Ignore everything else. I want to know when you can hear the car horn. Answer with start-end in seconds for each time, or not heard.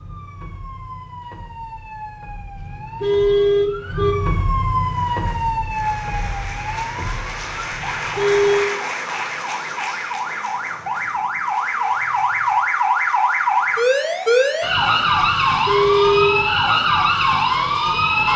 2.5-4.2, 7.7-8.7, 15.2-16.4.